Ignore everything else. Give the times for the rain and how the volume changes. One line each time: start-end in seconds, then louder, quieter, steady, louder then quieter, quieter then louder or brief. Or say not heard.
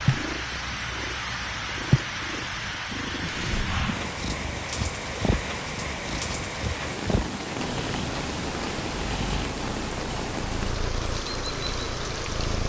0.0-12.6 steady.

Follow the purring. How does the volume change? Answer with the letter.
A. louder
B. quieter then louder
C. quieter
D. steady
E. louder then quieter
C.